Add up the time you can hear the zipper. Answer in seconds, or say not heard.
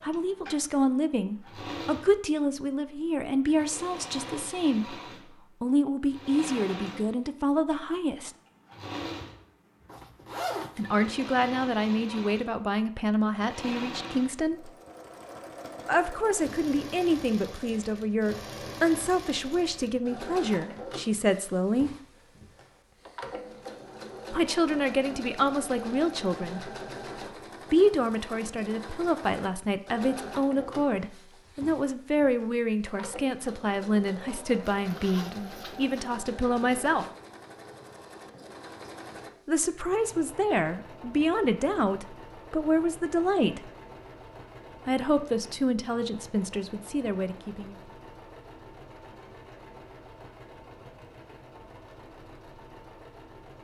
2 s.